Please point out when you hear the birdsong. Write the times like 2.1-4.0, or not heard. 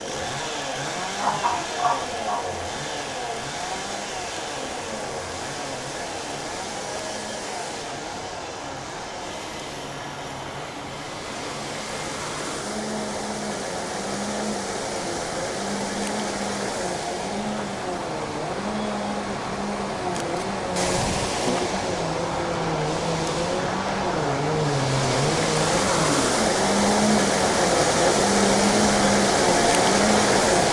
not heard.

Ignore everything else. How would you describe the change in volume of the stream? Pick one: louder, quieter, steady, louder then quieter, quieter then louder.
louder.